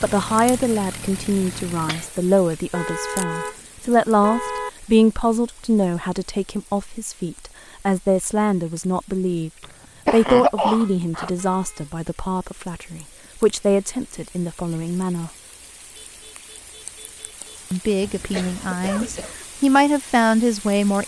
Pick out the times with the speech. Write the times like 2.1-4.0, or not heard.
0.0-15.3, 17.7-21.0.